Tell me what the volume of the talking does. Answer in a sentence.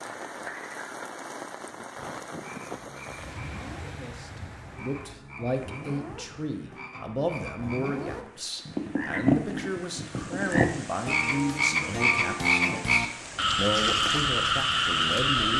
The loudness of the talking stays about the same.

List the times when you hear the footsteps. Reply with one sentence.
The footsteps can't be heard in this clip.